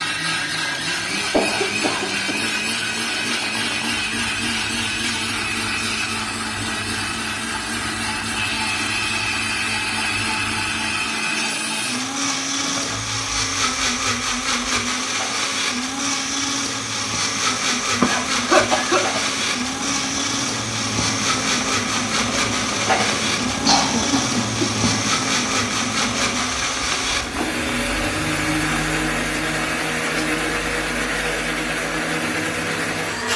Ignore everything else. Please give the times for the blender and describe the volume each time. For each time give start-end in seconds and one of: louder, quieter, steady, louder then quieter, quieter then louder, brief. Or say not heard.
0.0-33.3 steady.